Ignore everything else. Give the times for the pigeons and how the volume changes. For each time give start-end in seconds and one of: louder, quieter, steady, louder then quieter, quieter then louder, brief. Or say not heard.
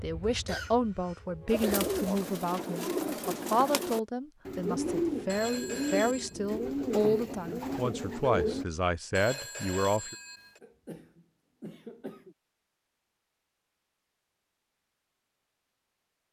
1.4-8.7 steady.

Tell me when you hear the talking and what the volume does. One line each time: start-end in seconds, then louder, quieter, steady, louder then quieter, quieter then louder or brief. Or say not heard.
0.0-10.2 steady.